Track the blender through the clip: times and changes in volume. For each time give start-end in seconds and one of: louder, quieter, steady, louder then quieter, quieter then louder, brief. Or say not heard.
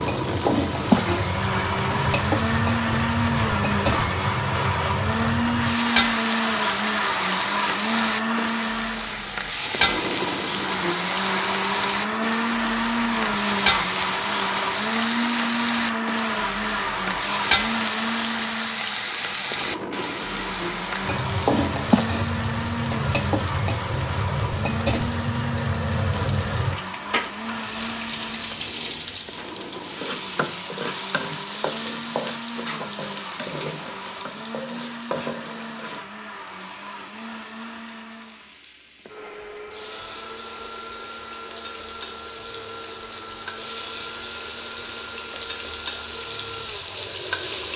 0.0-47.7 quieter.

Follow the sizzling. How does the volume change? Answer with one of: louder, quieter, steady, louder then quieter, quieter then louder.
quieter.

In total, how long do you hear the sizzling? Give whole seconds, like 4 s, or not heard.
48 s.